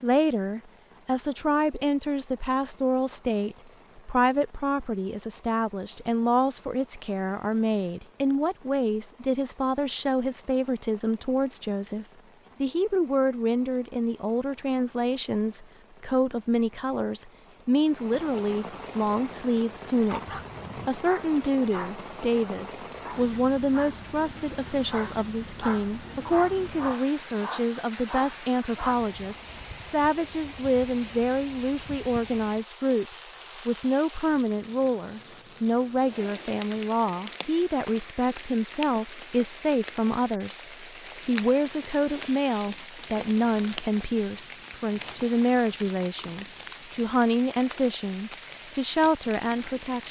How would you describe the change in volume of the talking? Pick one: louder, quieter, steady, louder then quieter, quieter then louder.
steady.